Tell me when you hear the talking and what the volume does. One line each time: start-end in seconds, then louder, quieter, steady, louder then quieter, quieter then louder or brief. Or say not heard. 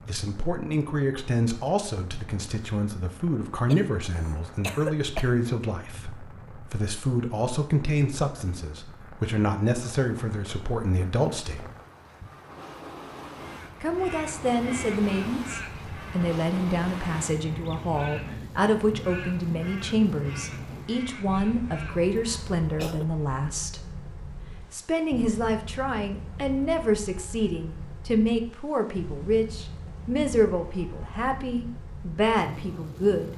0.1-11.7 steady
13.8-23.8 steady
24.7-33.3 steady.